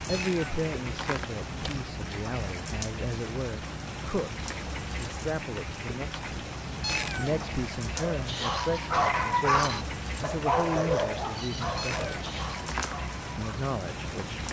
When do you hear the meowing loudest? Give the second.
7 s.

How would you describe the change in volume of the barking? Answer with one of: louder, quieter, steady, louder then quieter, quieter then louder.
quieter.